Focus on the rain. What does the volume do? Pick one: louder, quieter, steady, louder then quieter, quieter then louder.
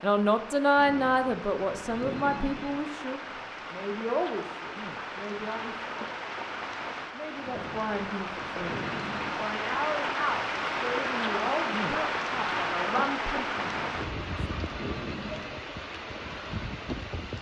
louder then quieter.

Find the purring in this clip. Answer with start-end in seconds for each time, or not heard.
not heard.